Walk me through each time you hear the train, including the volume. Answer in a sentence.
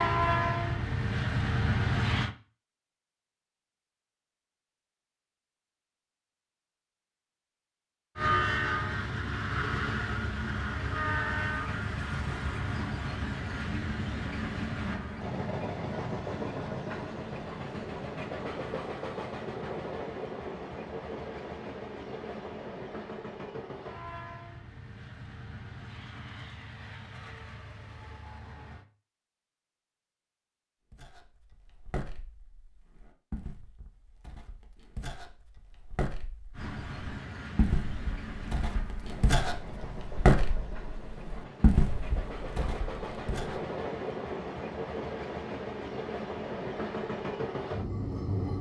The train can be heard briefly from 0.0 to 2.3 s; from 8.2 to 28.9 s, getting quieter; and from 36.5 to 48.5 s, getting louder.